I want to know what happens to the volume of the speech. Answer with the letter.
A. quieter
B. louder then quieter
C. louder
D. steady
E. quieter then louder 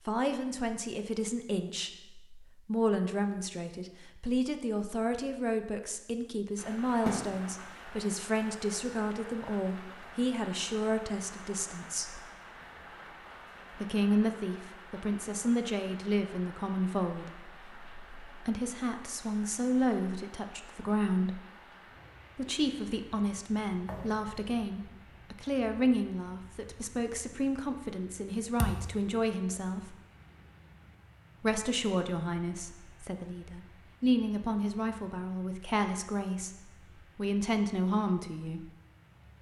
D.